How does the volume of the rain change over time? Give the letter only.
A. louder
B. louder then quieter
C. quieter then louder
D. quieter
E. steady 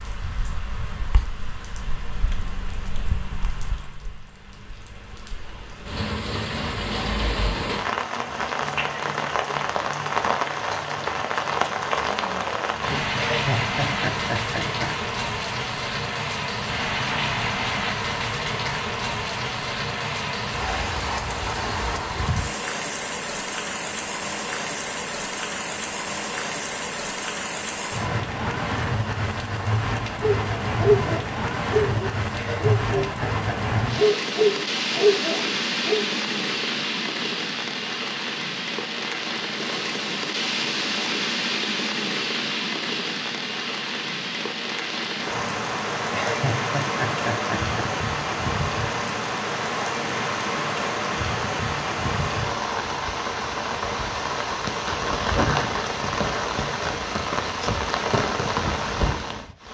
E.